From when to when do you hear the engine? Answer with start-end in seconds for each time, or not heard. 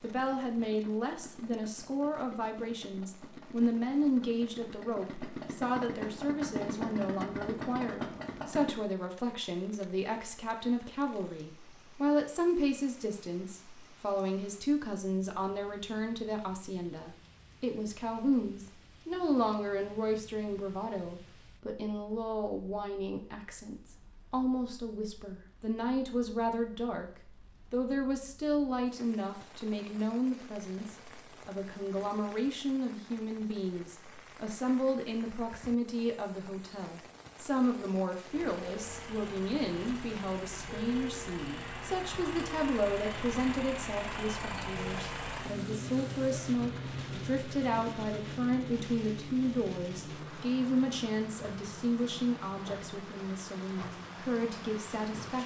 0.0-8.8, 38.3-55.4.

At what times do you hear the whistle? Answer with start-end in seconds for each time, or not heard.
not heard.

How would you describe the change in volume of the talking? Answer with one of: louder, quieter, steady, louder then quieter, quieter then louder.
steady.